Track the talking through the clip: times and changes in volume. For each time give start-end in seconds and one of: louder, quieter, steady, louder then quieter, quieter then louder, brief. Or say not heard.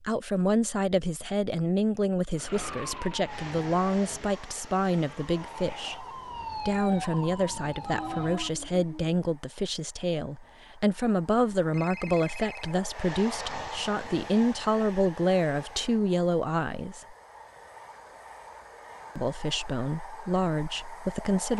0.0-17.1 steady
19.1-21.5 brief.